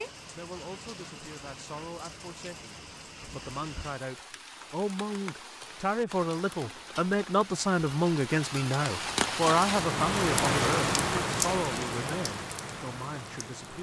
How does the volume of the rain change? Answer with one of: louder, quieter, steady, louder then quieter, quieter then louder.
louder.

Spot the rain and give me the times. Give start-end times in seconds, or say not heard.
0.0-13.7.